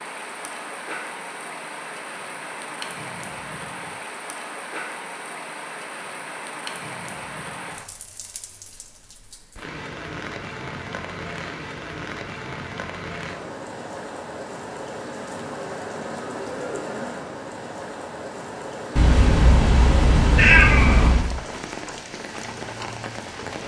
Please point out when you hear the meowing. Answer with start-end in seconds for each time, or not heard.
18.9-21.3.